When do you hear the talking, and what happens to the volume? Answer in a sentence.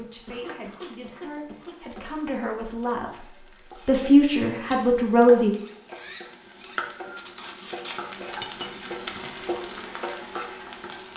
The talking can be heard from 0.0 to 5.5 s, getting louder.